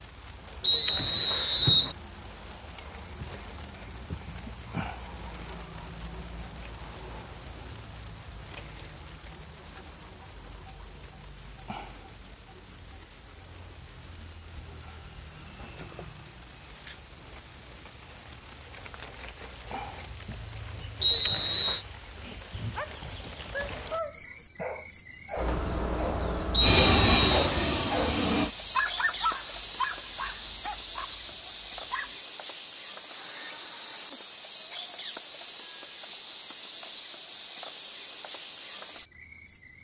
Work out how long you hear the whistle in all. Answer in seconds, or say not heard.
3 s.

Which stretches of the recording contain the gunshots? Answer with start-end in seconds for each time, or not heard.
not heard.